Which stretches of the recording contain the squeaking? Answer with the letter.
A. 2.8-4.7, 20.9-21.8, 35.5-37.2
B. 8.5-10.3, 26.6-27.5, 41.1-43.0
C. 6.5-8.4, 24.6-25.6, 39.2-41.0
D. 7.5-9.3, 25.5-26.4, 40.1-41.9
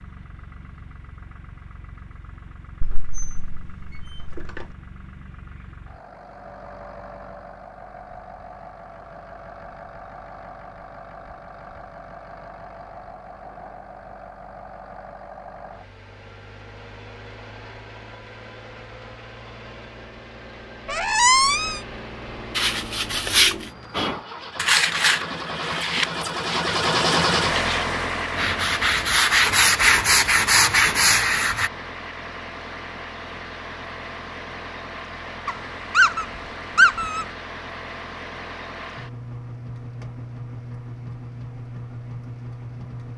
A.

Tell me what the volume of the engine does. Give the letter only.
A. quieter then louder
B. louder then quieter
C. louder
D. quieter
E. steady
B.